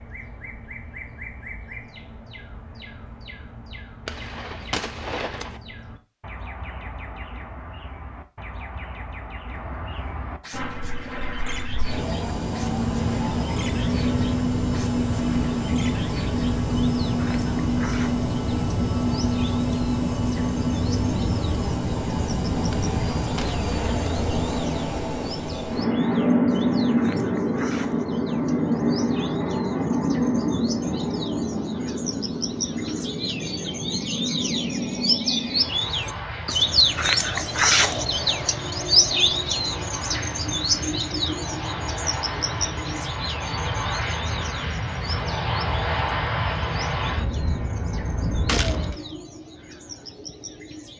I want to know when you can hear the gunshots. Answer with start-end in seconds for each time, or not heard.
4.0-5.6, 22.7-24.1, 48.5-49.0.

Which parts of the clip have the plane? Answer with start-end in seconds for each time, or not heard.
10.5-49.0.